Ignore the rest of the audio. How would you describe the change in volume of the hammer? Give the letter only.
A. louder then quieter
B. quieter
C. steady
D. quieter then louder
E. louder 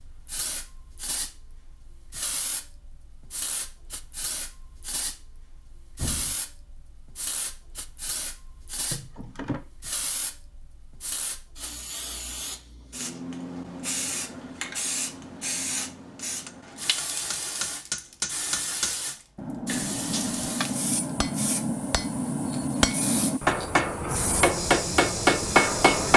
E.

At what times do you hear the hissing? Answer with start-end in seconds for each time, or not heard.
0.0-26.1.